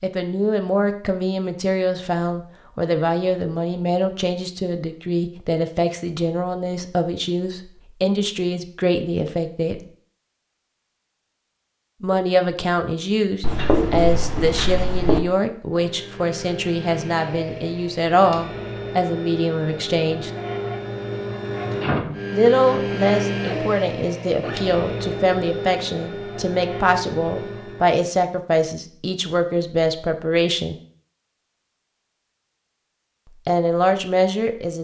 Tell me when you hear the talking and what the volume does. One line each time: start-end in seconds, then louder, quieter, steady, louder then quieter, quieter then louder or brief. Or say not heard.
0.0-9.8 steady
12.0-20.3 steady
22.3-30.8 steady
33.4-34.7 brief.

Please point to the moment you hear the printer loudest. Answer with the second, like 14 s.
23 s.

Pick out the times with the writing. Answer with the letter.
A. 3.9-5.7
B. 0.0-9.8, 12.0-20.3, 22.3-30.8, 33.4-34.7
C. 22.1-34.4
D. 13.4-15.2
D.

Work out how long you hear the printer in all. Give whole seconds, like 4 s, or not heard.
12 s.